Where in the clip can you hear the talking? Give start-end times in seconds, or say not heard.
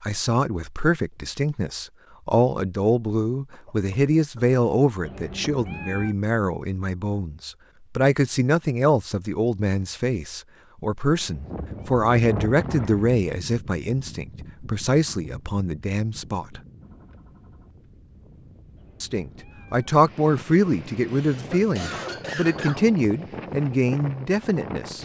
0.0-16.6, 19.0-25.0.